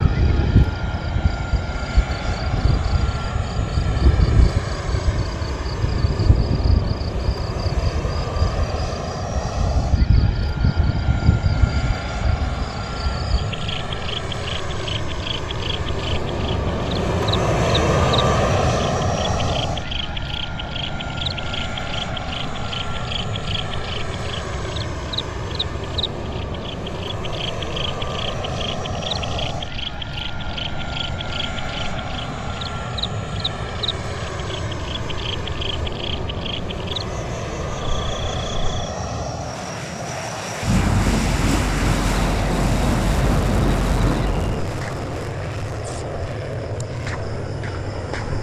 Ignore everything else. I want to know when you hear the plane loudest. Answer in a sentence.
The loudest moment of the plane is at 18 seconds.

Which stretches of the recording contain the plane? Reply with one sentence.
The plane can be heard from 0.0 to 48.3 s.